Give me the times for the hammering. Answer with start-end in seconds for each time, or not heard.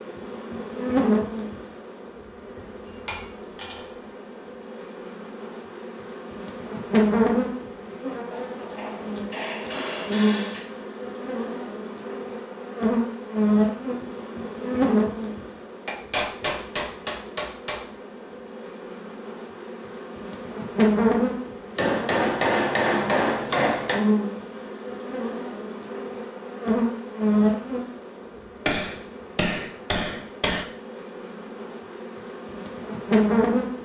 2.9-3.9, 8.3-10.7, 15.8-17.8, 21.8-24.0, 28.6-30.6.